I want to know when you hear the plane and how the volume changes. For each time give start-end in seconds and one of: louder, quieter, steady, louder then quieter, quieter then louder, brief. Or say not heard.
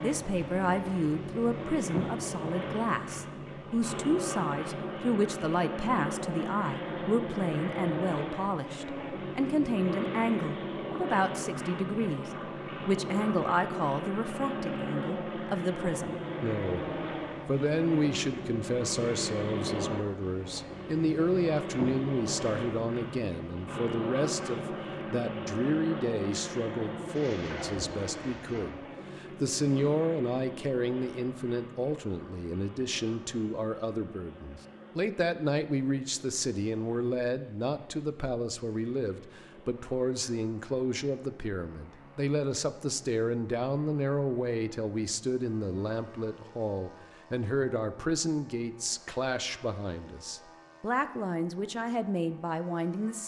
0.0-53.2 quieter.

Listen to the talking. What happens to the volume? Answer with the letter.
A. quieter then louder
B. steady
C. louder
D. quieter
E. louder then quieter
B.